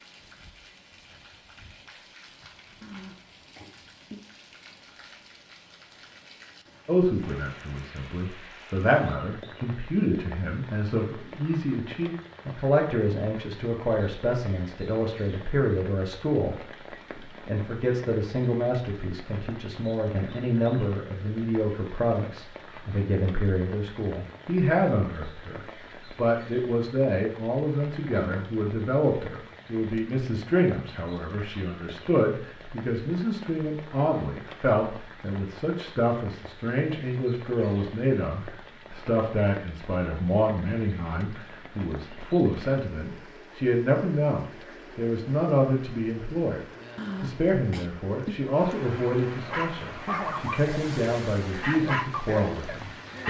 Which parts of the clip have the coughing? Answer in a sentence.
The coughing can be heard from 2.8 to 4.2 s, from 28.1 to 28.6 s and from 47.0 to 48.4 s.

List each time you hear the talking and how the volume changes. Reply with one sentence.
The talking can be heard from 6.8 to 46.6 s, at a steady volume; and from 47.2 to 53.2 s, at a steady volume.